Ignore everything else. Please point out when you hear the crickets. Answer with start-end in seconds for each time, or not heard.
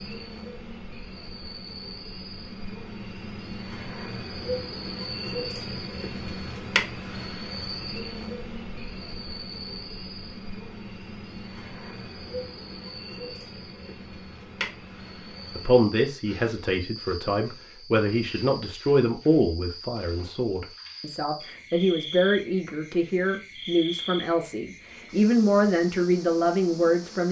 0.0-27.2.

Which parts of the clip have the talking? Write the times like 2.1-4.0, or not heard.
15.6-27.2.